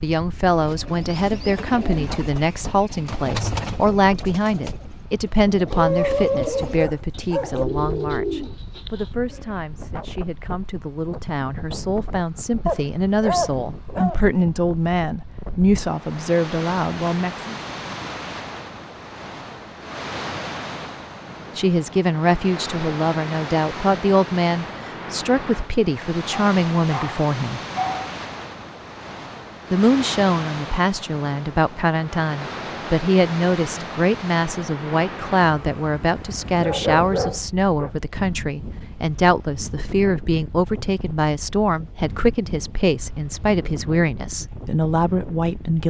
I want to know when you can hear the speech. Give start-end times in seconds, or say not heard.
0.0-17.6, 21.6-27.6, 29.7-45.8.